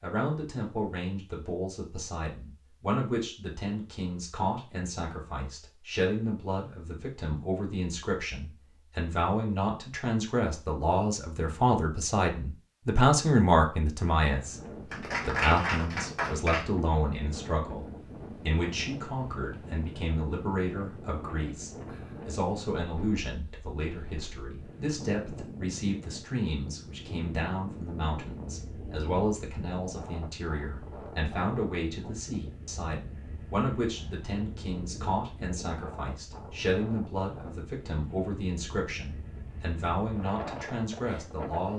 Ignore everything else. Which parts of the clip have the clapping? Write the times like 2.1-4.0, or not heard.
14.9-16.7.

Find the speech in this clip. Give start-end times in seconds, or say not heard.
0.0-41.7.